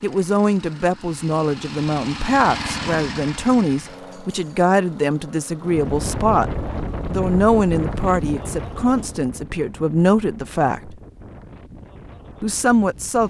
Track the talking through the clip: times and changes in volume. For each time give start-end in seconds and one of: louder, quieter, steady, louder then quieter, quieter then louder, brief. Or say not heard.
0.0-10.9 steady
12.4-13.2 brief.